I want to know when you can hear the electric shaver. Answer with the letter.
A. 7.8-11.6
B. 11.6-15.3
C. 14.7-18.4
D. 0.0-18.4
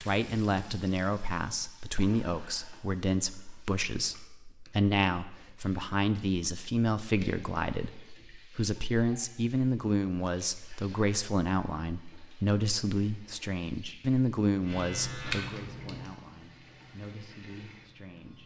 C.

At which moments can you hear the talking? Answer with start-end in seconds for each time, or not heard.
0.0-18.4.